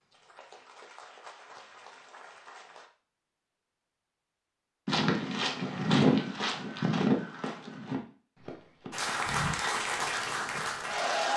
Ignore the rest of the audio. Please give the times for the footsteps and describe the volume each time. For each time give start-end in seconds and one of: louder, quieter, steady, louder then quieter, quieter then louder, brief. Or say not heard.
4.8-9.6 quieter.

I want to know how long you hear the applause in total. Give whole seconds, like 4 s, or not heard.
5 s.